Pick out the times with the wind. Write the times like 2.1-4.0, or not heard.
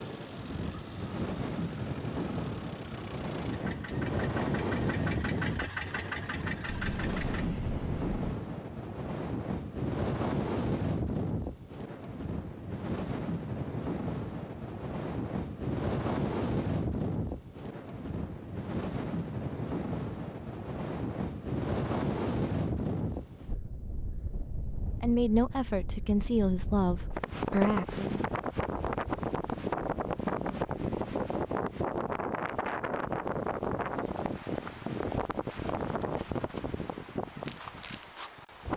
0.0-38.7.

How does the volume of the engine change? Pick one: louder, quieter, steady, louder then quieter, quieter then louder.
louder.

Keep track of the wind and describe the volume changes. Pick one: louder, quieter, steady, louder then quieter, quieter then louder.
steady.